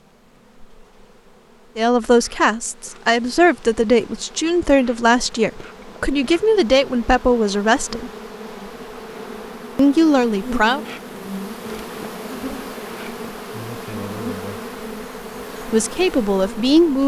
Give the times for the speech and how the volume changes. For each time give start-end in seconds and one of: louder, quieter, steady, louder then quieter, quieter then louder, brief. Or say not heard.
1.8-8.1 steady
9.8-10.8 brief
15.7-17.0 brief.